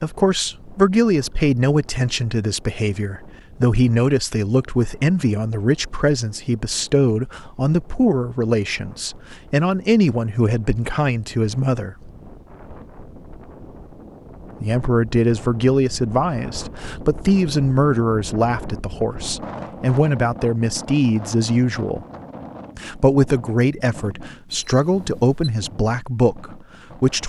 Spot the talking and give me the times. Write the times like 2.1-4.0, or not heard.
0.0-11.9, 14.6-22.1, 22.8-27.2.